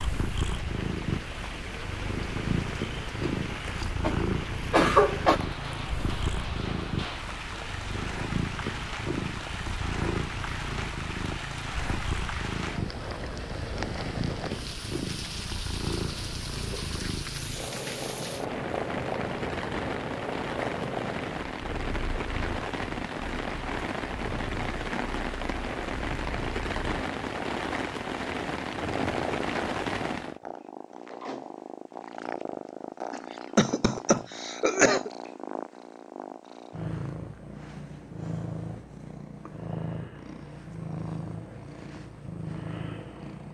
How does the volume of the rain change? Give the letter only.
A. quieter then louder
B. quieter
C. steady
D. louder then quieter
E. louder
E.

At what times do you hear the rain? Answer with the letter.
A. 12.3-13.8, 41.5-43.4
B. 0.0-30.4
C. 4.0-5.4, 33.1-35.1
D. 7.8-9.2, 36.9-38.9
B.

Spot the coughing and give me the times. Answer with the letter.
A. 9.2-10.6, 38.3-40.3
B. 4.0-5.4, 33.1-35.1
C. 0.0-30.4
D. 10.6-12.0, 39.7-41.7
B.